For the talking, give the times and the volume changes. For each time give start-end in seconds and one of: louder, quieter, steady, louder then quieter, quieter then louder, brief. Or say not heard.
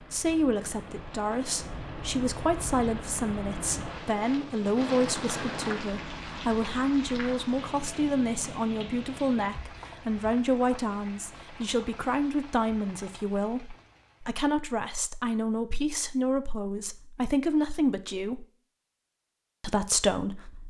0.1-18.4 steady
19.6-20.6 brief.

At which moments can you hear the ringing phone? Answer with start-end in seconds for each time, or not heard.
not heard.